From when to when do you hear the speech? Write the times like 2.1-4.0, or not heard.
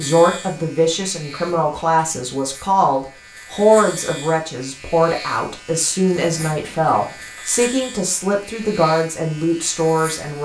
0.0-10.3.